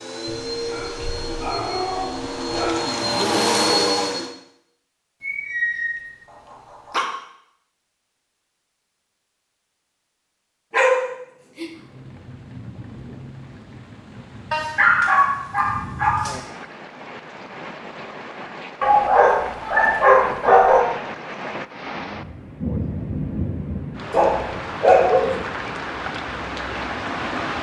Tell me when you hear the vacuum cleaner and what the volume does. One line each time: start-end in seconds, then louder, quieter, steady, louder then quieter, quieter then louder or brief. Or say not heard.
0.0-4.3 louder.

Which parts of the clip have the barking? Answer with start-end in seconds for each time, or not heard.
0.2-2.8, 5.2-7.0, 10.7-11.7, 14.5-16.4, 18.8-20.8, 24.1-25.4.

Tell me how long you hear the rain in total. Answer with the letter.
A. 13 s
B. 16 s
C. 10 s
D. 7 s
B.